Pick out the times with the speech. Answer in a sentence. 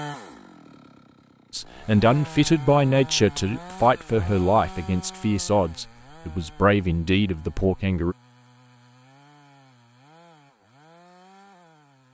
You can hear the speech from 1.5 to 8.2 s.